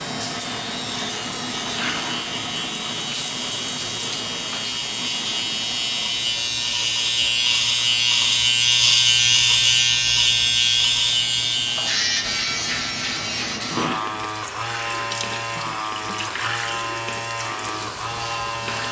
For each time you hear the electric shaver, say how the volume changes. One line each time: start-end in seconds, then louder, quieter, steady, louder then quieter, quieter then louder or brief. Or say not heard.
0.0-18.8 louder then quieter.